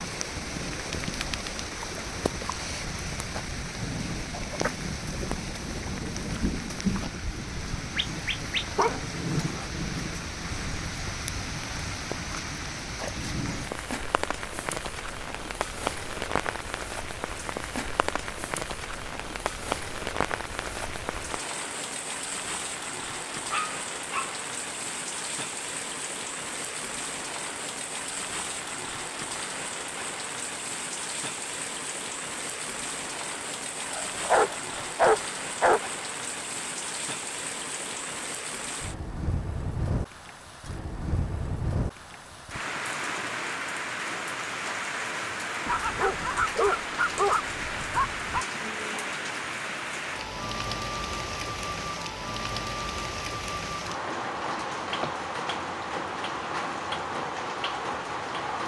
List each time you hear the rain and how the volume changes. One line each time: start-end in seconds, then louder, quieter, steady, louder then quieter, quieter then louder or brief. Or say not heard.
0.0-58.6 steady.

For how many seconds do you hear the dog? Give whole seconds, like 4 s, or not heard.
7 s.